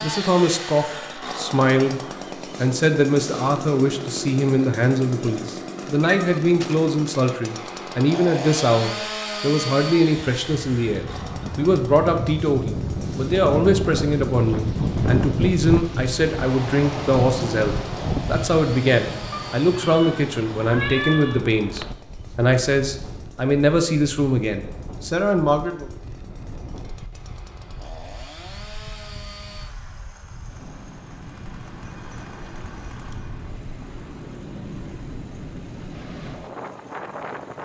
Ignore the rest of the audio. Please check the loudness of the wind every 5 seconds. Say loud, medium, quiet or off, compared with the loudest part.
off, off, loud, loud, quiet, quiet, quiet, medium.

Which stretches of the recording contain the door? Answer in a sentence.
You can't hear the door here.